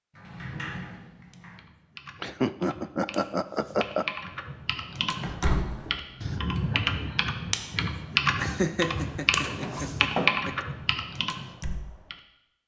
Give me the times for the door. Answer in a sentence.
The door can be heard from 0.1 to 1.6 s, from 5.2 to 6.7 s and from 8.9 to 10.3 s.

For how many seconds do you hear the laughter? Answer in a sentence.
You can hear the laughter for 4 seconds altogether.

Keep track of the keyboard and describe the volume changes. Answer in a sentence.
The loudness of the keyboard goes up.